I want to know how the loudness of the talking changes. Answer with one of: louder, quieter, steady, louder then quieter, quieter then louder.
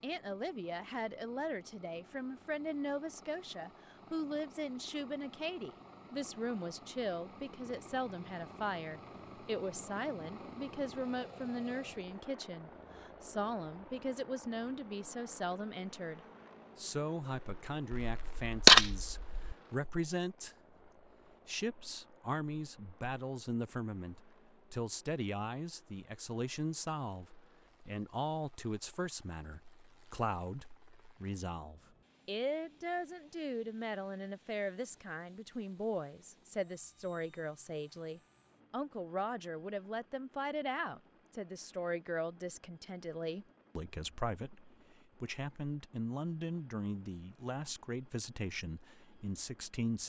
steady.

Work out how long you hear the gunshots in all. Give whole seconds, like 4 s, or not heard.
2 s.